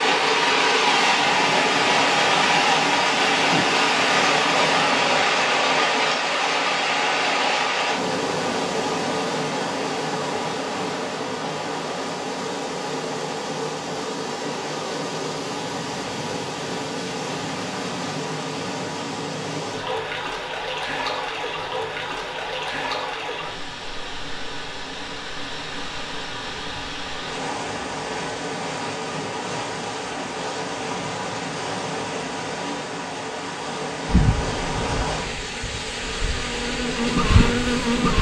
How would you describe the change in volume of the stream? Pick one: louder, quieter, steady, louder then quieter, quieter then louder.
quieter.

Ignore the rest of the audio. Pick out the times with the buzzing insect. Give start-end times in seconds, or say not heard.
34.0-38.1.